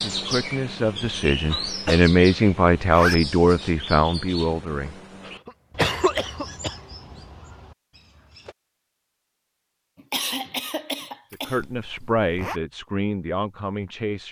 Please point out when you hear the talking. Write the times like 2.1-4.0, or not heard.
0.0-5.0, 11.3-14.2.